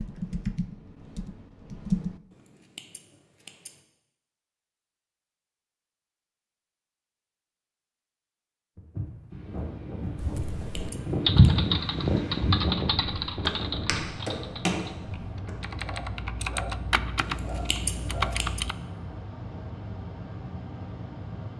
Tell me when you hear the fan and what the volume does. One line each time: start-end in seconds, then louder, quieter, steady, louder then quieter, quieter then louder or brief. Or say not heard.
9.3-21.5 quieter.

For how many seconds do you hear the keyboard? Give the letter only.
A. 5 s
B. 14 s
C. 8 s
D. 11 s
D.